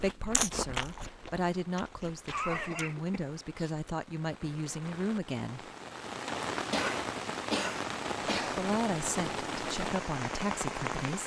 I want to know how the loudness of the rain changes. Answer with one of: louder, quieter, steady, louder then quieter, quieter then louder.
louder.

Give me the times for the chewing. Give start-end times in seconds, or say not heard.
0.0-2.9.